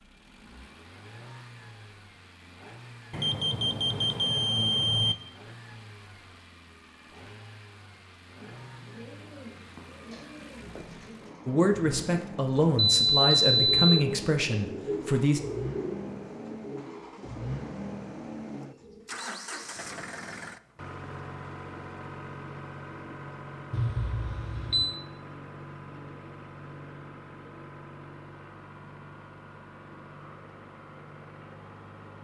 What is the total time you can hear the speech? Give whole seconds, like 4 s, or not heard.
4 s.